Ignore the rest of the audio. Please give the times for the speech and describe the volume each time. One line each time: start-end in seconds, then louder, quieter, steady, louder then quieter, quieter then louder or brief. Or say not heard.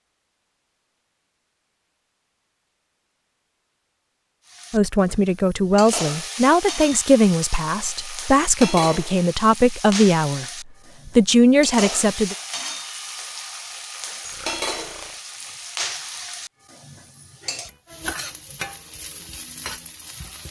4.7-10.4 steady
11.1-12.3 brief.